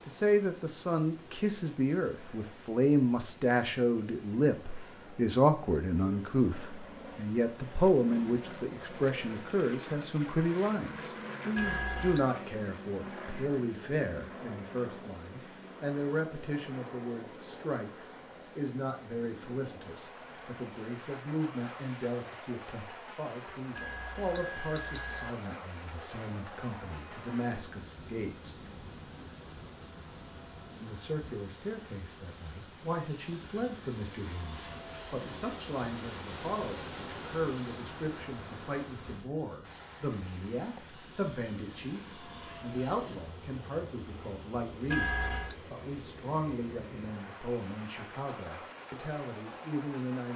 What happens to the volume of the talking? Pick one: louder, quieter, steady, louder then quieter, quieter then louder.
quieter.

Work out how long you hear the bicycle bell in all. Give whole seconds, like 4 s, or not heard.
3 s.